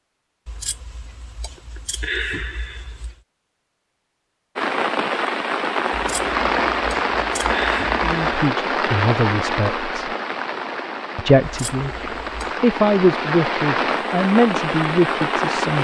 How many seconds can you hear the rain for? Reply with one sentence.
You can hear the rain for 11 seconds altogether.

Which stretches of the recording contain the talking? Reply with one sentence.
The talking can be heard from 8.0 to 10.1 s and from 11.2 to 15.7 s.